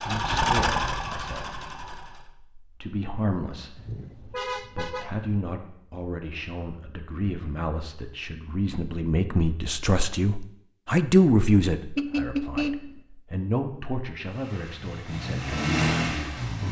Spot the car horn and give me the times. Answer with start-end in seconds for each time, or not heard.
3.8-5.3, 11.9-13.0.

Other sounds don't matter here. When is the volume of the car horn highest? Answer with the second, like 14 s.
13 s.